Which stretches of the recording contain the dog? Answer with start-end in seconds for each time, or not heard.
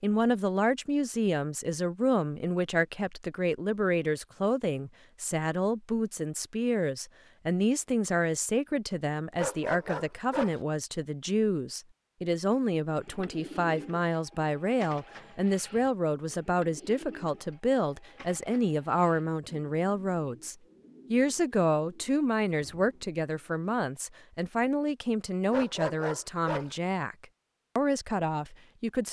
9.3-10.6, 25.5-26.8.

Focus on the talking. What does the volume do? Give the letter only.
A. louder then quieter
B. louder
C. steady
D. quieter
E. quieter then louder
C.